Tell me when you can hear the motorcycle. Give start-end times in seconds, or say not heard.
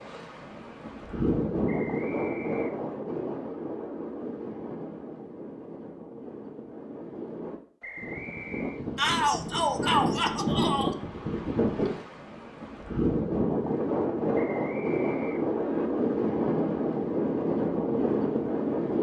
not heard.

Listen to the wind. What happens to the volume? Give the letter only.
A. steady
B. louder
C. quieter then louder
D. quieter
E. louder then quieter
C.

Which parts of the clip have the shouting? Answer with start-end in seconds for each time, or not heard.
8.9-10.9.